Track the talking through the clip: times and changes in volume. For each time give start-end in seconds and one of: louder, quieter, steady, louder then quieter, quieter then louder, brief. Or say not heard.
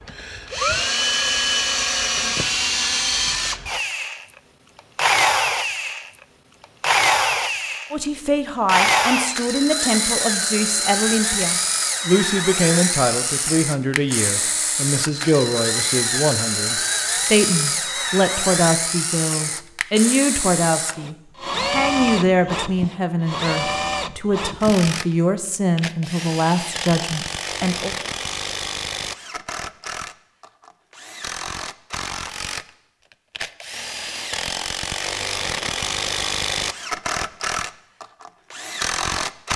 7.9-27.9 steady.